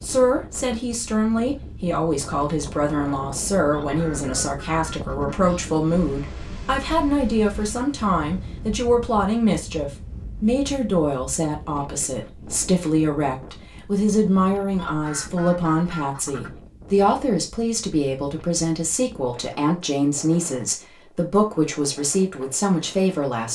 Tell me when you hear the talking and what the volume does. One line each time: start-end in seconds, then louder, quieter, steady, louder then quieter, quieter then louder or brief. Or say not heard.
0.0-23.5 steady.